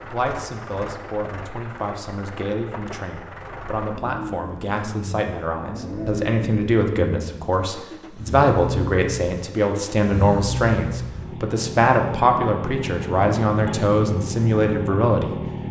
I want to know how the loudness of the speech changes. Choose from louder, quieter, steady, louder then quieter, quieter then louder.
louder.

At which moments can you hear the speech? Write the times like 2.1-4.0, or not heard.
0.0-15.4.